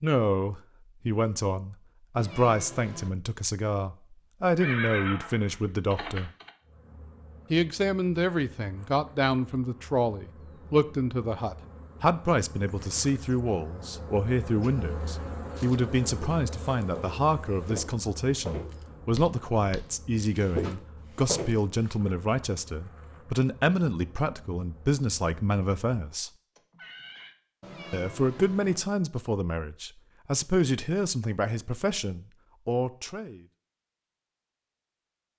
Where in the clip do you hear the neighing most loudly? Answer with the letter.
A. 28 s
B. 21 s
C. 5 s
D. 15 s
C.